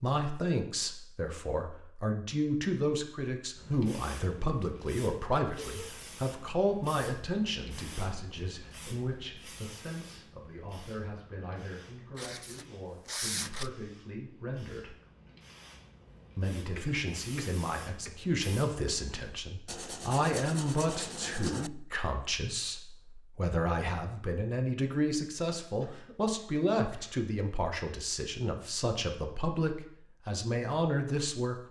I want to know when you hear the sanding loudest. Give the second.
13 s.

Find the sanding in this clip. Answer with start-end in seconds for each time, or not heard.
12.2-13.7, 19.6-21.7.